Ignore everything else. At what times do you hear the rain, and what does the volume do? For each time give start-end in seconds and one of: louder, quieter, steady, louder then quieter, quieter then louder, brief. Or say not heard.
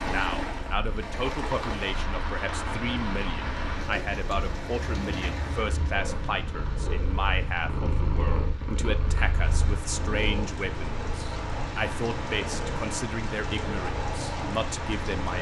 0.0-15.3 quieter then louder.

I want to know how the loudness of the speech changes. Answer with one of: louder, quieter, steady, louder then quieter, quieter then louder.
steady.